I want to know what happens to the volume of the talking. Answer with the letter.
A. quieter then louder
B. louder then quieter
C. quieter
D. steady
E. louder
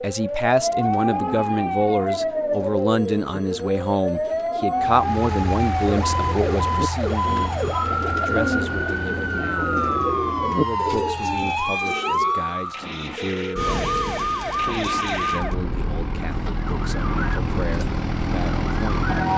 C.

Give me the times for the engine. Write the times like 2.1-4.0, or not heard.
4.8-19.3.